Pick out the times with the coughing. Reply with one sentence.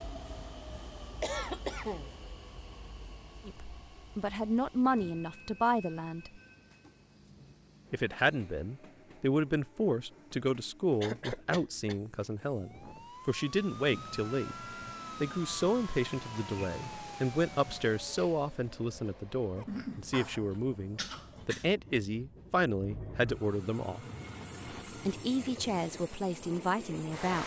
You can hear the coughing from 1.2 to 2.1 s, from 11.0 to 12.1 s and from 19.6 to 21.6 s.